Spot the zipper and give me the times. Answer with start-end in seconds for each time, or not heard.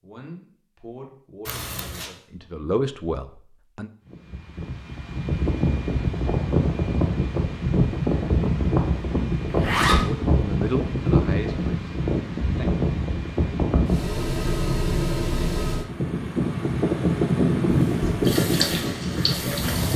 1.4-2.1, 9.5-10.1, 17.7-18.4.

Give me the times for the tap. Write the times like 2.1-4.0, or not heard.
18.2-19.9.